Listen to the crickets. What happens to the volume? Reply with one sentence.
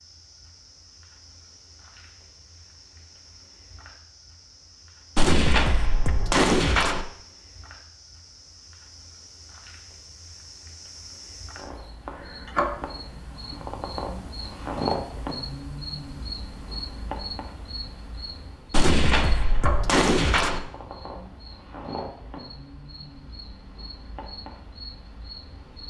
The loudness of the crickets goes up, then down.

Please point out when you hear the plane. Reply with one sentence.
You can't hear the plane here.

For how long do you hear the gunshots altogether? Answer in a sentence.
The gunshots can be heard for 4 seconds in total.